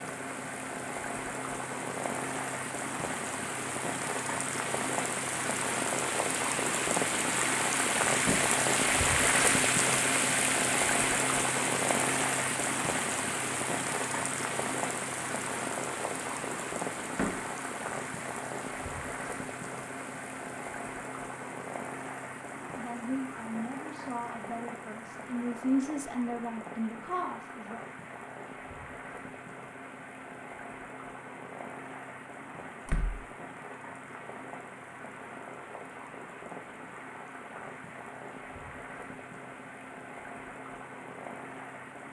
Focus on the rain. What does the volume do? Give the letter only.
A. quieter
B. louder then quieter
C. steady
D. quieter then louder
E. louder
A.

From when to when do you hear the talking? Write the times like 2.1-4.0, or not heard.
22.6-27.8.